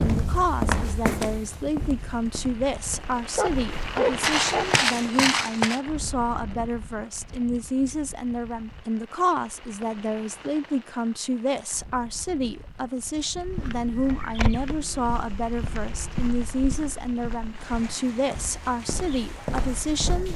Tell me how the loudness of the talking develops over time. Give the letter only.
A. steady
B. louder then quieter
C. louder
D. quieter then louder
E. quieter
A.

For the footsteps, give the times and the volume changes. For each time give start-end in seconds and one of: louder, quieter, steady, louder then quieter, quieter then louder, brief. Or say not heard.
0.0-5.8 quieter then louder
13.3-20.3 quieter then louder.